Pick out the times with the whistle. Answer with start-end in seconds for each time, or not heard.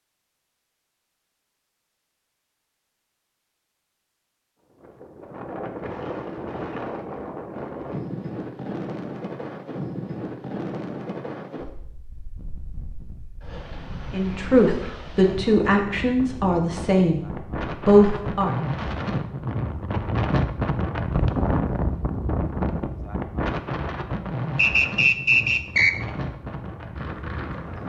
24.6-25.9.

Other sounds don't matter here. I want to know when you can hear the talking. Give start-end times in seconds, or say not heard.
14.1-17.2, 17.9-18.5.